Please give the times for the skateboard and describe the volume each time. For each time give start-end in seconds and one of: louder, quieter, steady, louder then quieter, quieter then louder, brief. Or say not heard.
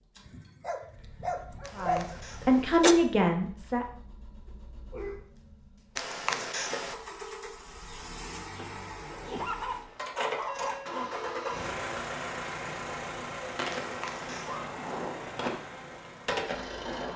12.6-17.1 quieter then louder.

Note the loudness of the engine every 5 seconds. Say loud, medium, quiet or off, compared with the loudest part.
quiet, medium, loud, medium.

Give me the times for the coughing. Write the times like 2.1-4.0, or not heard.
1.6-3.0, 6.0-7.0, 13.7-14.7.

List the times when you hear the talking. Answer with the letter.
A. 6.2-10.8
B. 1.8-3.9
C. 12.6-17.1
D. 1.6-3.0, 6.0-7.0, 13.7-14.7
B.